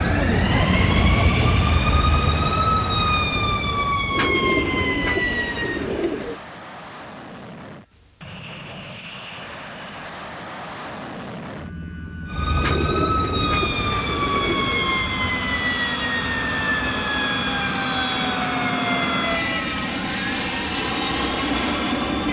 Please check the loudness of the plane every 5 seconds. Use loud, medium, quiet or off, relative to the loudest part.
medium, quiet, medium, loud, loud.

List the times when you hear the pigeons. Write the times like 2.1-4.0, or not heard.
4.1-6.4, 12.6-15.0.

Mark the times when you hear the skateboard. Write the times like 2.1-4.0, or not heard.
not heard.